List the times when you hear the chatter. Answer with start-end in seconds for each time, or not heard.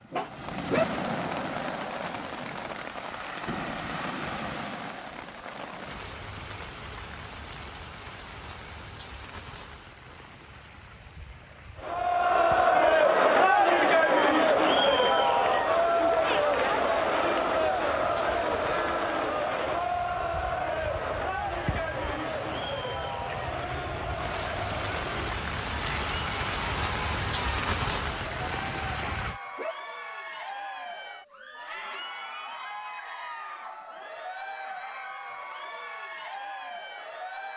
11.8-37.5.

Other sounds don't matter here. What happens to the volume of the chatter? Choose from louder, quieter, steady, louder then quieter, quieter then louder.
quieter.